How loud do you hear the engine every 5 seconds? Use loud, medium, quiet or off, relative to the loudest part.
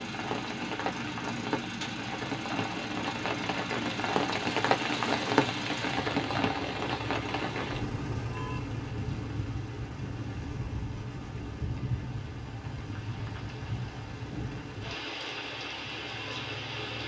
loud, loud, medium, medium.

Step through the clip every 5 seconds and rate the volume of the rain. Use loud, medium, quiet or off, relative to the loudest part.
loud, loud, medium, medium.